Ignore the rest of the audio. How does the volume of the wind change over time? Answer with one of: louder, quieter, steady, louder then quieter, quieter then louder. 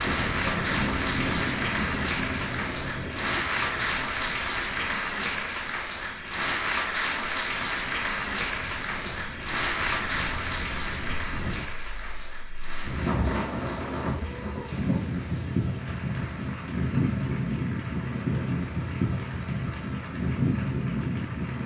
quieter then louder.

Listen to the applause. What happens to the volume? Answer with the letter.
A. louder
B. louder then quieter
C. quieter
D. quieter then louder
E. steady
C.